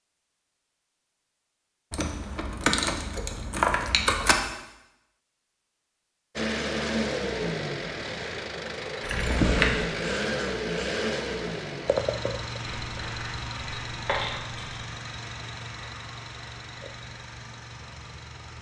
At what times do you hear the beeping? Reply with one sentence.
The beeping can't be heard in this clip.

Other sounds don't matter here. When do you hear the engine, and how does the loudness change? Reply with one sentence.
You can hear the engine from 6.3 to 18.5 s, getting quieter.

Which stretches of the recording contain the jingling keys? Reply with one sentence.
You can hear the jingling keys from 1.9 to 4.3 s, from 9.0 to 9.8 s and from 12.6 to 14.8 s.